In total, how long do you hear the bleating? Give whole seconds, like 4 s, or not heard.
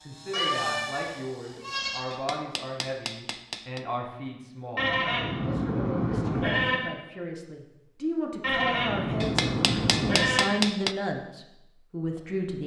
6 s.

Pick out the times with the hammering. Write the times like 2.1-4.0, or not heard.
2.1-3.9, 9.2-10.9.